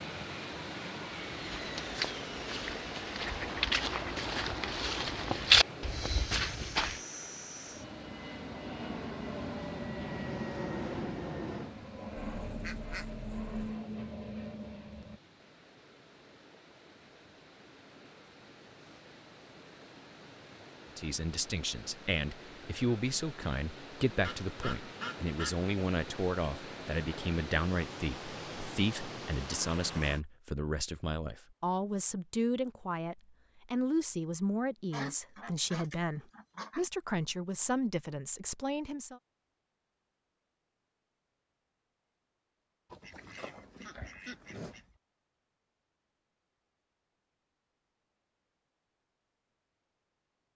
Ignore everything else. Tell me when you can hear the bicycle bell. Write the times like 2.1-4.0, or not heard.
not heard.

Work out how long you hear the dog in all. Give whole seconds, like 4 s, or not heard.
not heard.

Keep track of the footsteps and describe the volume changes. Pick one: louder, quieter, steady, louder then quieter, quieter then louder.
louder then quieter.